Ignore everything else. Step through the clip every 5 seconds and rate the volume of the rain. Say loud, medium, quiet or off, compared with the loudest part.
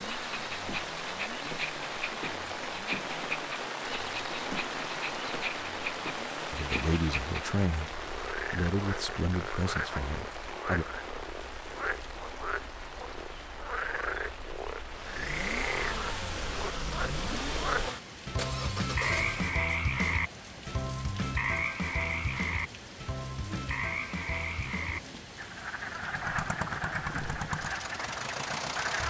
loud, loud, medium, medium, medium, medium.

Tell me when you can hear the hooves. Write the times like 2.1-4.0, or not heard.
not heard.